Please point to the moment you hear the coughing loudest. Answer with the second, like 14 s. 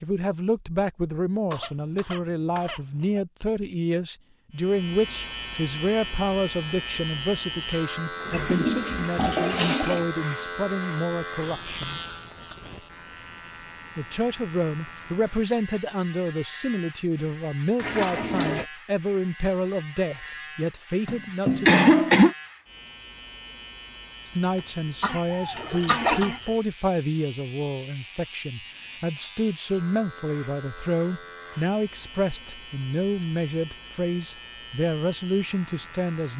22 s.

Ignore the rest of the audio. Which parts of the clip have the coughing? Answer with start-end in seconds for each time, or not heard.
1.5-3.2, 21.1-22.4, 25.0-26.4.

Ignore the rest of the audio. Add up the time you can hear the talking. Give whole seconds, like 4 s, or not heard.
32 s.